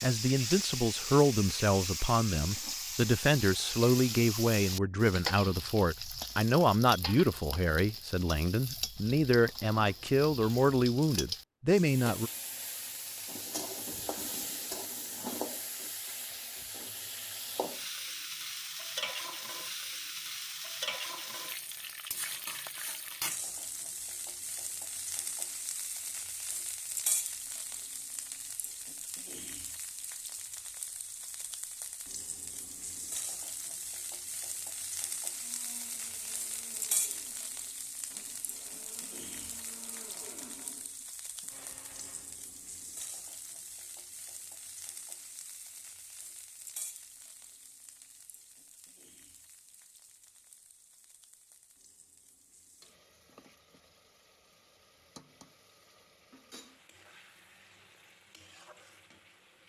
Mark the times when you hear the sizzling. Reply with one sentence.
You can hear the sizzling from 0.0 to 59.6 s.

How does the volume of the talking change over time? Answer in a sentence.
The loudness of the talking stays about the same.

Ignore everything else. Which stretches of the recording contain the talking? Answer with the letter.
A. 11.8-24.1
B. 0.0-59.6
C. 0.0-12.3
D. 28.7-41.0
C.